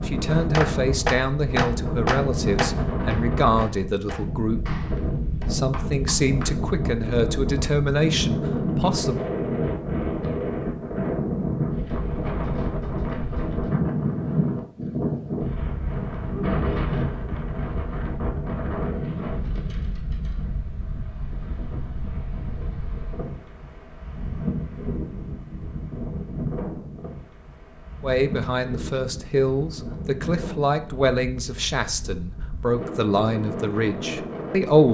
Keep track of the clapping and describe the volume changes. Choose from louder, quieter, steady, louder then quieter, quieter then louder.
quieter.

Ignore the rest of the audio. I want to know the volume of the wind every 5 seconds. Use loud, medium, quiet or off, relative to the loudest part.
loud, loud, loud, loud, medium, medium, medium.